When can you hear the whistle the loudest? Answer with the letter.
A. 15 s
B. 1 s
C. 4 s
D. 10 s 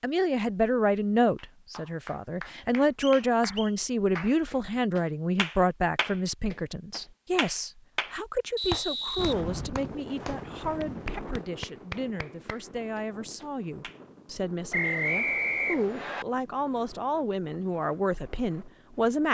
A.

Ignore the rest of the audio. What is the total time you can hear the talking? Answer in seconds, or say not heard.
19 s.